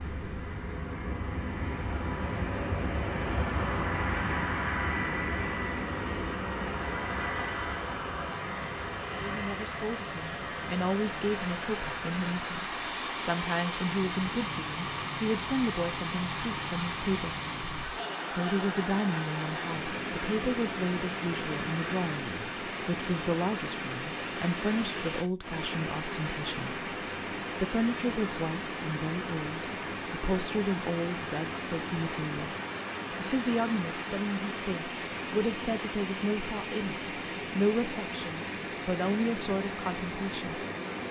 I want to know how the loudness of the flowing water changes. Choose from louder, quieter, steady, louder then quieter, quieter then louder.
louder.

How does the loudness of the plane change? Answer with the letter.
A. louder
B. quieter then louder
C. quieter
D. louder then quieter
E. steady
C.